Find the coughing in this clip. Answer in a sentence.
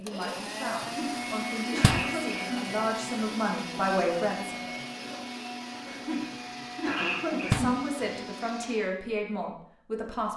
The coughing can be heard from 0.9 to 2.8 s and from 5.8 to 7.8 s.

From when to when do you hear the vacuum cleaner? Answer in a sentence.
You can hear the vacuum cleaner from 0.0 to 8.9 s.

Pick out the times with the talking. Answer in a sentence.
You can hear the talking from 0.0 to 5.2 s and from 7.3 to 10.3 s.